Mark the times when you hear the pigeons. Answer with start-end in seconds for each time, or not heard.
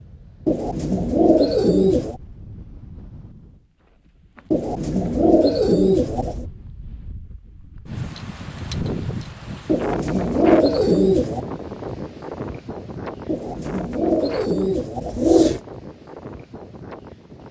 0.5-2.1, 4.5-6.5, 9.7-11.4, 13.2-15.6.